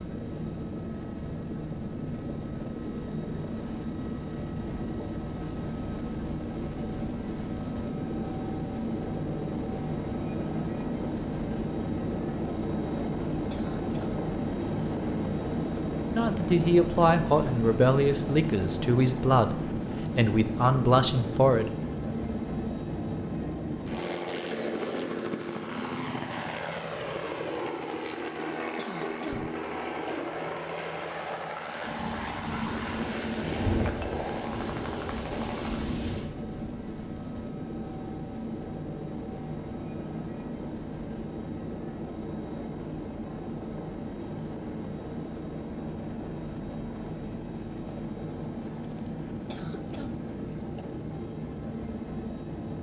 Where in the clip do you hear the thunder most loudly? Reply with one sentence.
The volume of the thunder peaks at 34 seconds.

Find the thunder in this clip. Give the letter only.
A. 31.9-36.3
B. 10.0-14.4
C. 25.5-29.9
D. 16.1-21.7
A.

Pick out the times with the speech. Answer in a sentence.
The speech can be heard from 16.1 to 21.7 s.